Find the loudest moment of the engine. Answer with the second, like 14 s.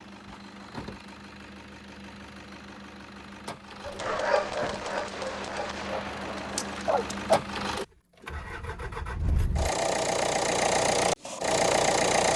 12 s.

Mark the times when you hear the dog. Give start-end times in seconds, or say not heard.
3.9-7.4.